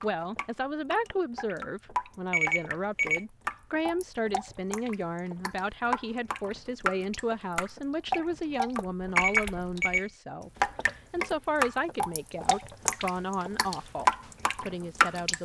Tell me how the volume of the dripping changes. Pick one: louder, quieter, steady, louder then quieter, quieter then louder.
louder.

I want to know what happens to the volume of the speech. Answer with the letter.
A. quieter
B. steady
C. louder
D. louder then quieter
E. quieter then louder
B.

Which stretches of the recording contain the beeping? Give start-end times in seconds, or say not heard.
2.3-3.2, 9.2-10.1.